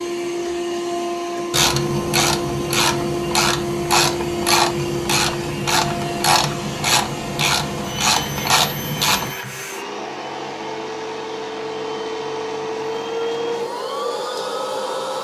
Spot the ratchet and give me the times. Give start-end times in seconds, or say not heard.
1.5-9.3.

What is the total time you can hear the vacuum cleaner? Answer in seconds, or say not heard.
15 s.